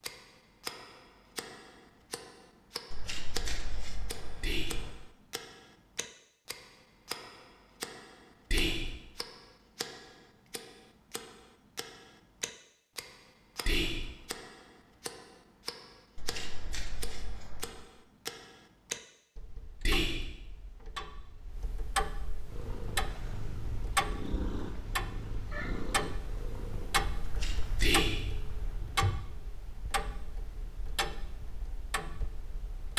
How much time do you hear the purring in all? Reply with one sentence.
The purring can be heard for 7 seconds in total.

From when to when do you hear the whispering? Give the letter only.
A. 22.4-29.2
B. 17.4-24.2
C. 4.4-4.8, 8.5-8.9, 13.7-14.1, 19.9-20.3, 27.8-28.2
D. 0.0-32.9
C.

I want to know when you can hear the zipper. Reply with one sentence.
The zipper can't be heard in this clip.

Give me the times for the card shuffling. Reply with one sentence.
You can hear the card shuffling from 2.9 to 4.9 s, from 16.1 to 17.9 s and from 27.2 to 28.0 s.